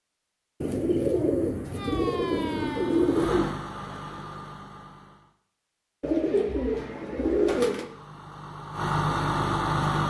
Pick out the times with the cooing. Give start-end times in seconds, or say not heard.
0.6-3.5, 6.0-7.8.